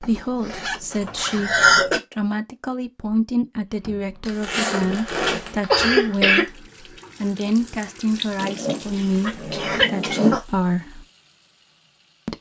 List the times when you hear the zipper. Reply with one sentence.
You can hear the zipper from 0.0 to 1.8 s, from 4.2 to 5.6 s and from 8.3 to 10.4 s.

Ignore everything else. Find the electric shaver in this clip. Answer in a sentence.
You can't hear the electric shaver here.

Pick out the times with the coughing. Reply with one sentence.
The coughing can be heard from 1.0 to 2.0 s, from 5.6 to 6.5 s and from 8.5 to 10.4 s.